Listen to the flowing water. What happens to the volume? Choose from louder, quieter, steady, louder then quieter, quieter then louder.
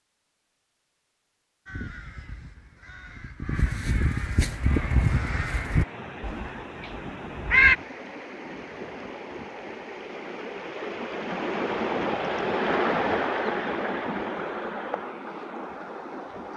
louder then quieter.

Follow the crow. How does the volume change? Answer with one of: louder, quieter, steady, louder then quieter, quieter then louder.
louder then quieter.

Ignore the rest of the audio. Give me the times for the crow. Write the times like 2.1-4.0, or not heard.
1.6-7.8.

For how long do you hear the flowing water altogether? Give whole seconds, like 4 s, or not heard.
12 s.